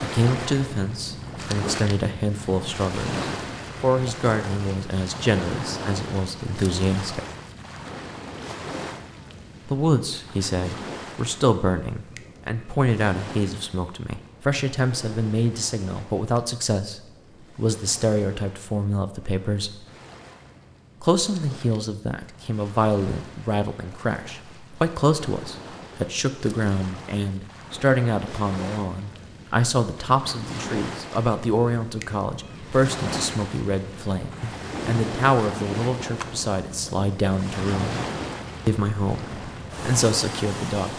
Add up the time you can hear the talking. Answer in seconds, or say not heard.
37 s.